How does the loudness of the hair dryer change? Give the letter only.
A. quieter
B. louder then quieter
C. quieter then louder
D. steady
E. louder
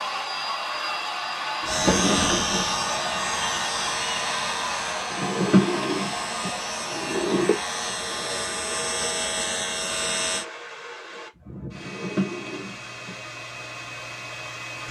A.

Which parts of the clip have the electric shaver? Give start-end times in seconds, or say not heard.
1.6-10.4.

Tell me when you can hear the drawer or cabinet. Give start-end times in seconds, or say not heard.
1.6-2.7, 5.1-7.5, 11.8-13.2.